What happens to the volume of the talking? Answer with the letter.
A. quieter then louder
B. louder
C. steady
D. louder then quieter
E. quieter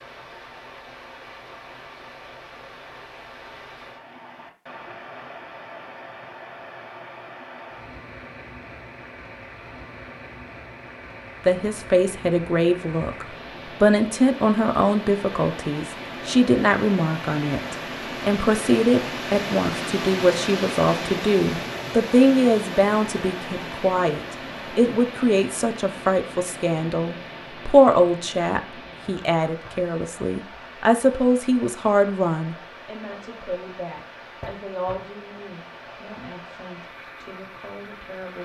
E.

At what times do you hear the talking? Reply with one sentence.
You can hear the talking from 11.4 to 38.4 s.